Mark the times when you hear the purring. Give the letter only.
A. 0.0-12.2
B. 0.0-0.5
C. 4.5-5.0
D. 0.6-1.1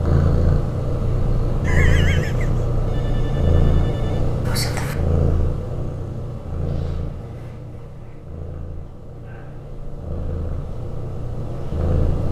A.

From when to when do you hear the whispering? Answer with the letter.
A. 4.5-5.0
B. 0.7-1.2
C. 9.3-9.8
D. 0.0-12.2
A.